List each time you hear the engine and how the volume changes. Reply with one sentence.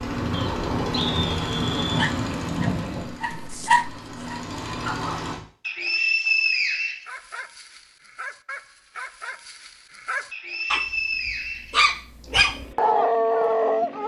You can hear the engine from 0.0 to 5.4 s, getting quieter then louder; and briefly from 12.2 to 14.0 s.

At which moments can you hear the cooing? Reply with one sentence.
The cooing can't be heard in this clip.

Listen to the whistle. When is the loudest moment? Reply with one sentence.
The loudest moment of the whistle is at 6 seconds.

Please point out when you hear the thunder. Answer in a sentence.
The thunder can be heard from 0.1 to 3.2 s.